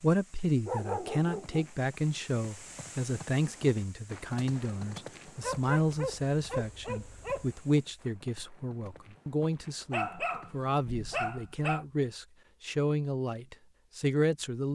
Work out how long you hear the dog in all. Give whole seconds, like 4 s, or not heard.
5 s.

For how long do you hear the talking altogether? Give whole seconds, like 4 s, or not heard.
15 s.